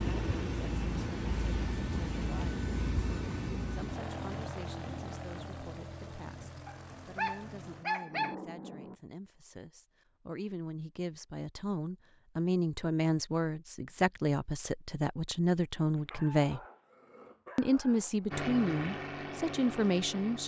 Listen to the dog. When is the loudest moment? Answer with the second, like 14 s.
8 s.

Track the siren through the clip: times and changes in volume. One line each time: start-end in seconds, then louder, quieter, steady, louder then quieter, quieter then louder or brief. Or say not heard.
not heard.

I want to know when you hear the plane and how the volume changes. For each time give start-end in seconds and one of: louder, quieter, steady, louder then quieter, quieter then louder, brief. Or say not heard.
0.0-8.9 quieter
18.3-20.4 brief.